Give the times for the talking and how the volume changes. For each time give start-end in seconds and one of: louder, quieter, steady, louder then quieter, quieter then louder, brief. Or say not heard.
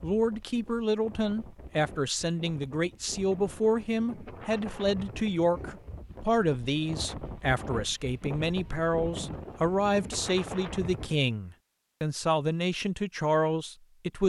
0.0-14.2 steady.